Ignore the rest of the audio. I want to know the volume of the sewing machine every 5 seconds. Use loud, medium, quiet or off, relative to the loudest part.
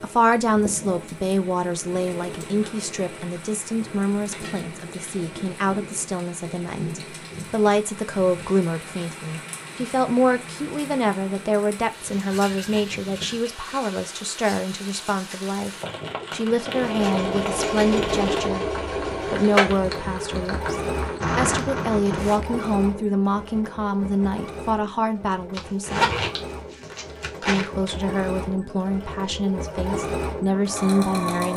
off, off, off, loud, medium, medium, loud.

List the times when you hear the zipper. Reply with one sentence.
The zipper can be heard from 25.5 to 27.9 s.